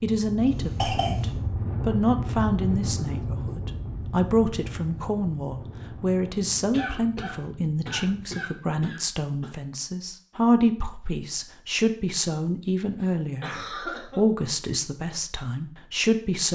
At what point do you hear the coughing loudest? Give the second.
1 s.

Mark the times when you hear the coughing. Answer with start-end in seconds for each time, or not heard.
0.5-1.4, 6.7-9.5, 12.9-14.2.